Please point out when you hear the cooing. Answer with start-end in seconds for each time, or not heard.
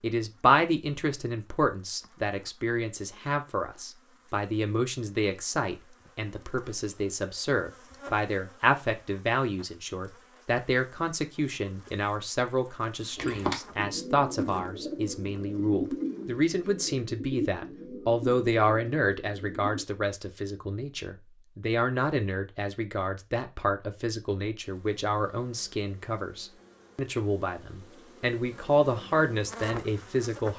13.2-19.9.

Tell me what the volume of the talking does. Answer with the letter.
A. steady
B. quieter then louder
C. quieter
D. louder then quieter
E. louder
A.